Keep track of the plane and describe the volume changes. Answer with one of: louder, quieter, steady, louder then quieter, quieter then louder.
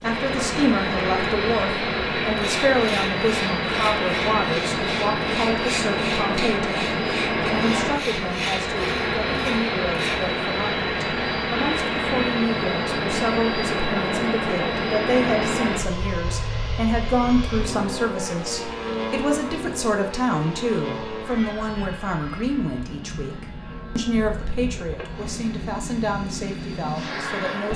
quieter.